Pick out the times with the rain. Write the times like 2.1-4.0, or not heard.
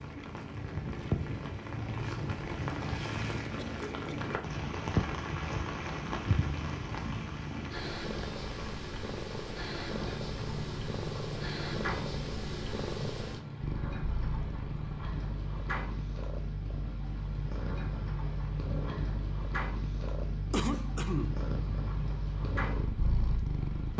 0.0-23.9.